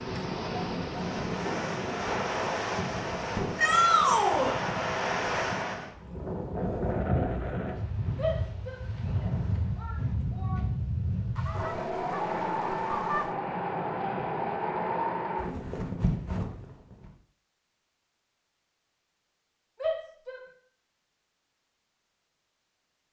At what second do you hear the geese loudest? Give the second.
13 s.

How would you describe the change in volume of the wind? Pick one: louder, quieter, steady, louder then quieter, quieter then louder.
steady.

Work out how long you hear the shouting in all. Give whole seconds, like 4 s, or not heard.
4 s.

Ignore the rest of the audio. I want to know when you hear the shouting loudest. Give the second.
4 s.